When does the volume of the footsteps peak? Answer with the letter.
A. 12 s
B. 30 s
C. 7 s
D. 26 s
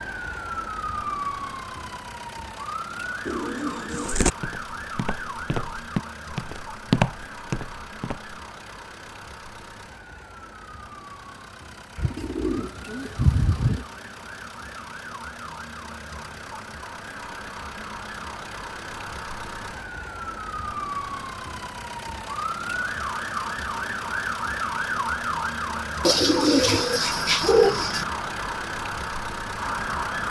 C.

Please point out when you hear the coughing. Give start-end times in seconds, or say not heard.
not heard.